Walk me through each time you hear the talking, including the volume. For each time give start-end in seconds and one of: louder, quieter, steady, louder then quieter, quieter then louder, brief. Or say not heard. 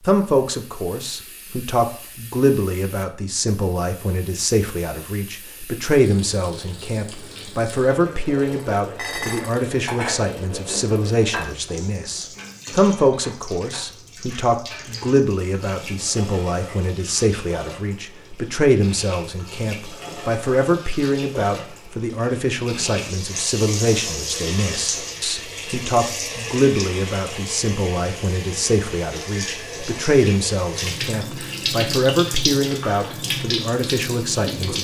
0.1-34.7 steady.